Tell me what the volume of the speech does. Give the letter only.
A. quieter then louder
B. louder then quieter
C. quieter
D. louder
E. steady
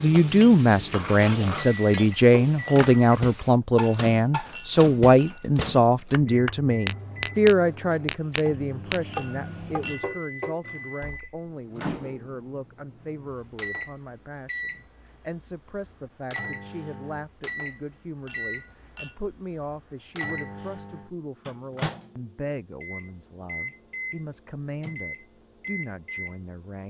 C.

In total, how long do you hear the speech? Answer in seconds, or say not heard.
27 s.